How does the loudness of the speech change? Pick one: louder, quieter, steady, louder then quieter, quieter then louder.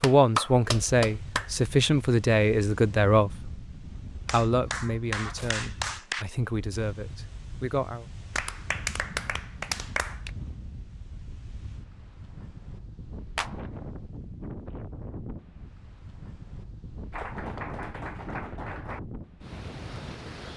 quieter.